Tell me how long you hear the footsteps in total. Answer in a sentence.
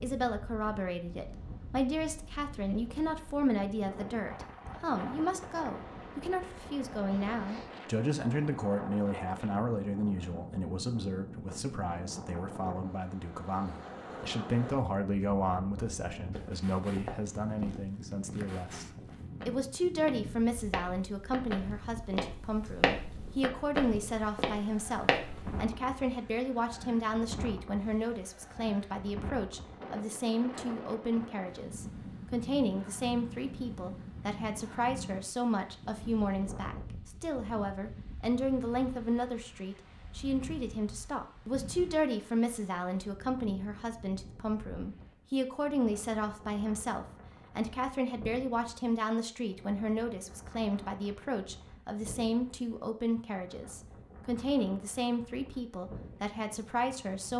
The footsteps can be heard for 9 seconds in total.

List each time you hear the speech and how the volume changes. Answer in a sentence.
You can hear the speech from 0.0 to 57.3 s, at a steady volume.